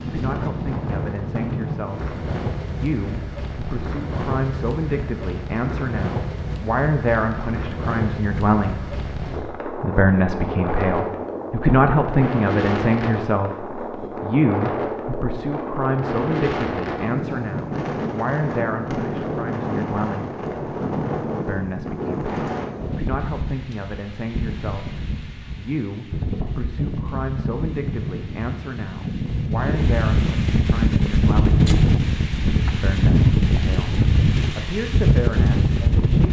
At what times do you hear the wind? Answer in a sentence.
The wind can be heard from 0.0 to 36.2 s.